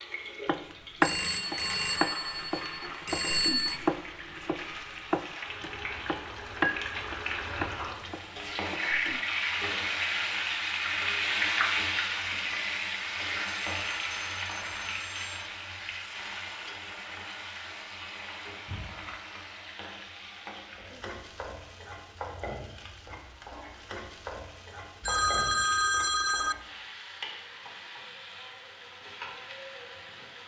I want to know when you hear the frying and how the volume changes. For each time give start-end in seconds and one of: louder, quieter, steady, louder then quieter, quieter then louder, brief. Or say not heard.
0.0-30.4 louder then quieter.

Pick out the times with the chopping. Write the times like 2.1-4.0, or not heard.
0.5-9.2.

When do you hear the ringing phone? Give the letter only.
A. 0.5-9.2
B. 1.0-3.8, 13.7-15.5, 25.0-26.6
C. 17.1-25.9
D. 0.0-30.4
B.